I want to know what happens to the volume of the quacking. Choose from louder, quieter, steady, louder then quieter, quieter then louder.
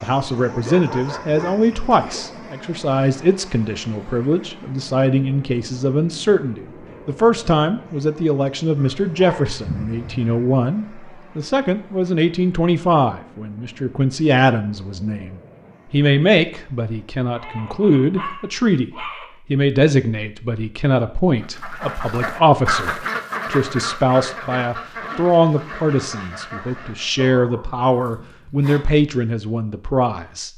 quieter.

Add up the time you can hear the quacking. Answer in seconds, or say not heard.
6 s.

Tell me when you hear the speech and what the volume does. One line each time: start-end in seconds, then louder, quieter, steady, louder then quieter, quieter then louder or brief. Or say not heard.
0.0-30.5 steady.